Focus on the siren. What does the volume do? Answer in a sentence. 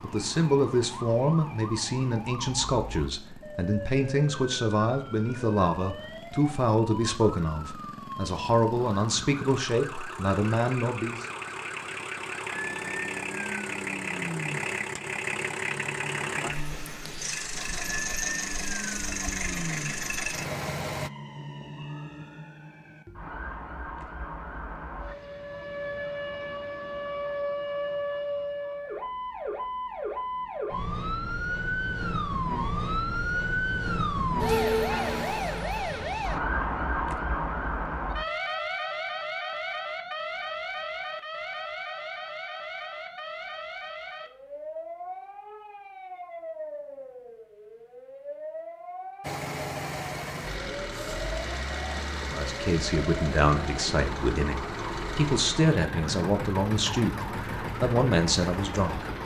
The loudness of the siren goes up, then down.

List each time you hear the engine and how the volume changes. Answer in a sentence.
You can hear the engine from 0.0 to 21.1 s, getting louder; and from 49.2 to 59.2 s, at a steady volume.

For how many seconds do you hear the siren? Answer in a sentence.
You can hear the siren for 59 seconds altogether.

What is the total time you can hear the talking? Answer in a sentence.
The talking can be heard for 18 seconds in total.